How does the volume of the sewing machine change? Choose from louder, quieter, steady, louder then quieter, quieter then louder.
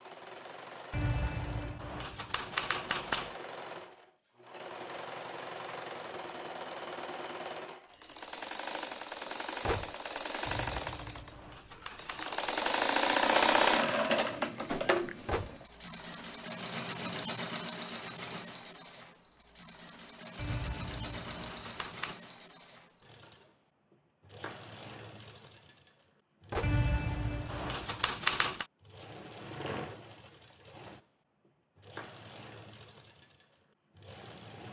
louder then quieter.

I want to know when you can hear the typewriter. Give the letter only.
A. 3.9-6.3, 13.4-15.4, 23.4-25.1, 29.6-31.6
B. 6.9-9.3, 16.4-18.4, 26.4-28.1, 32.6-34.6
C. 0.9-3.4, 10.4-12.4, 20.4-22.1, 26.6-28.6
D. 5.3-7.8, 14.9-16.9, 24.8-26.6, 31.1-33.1
C.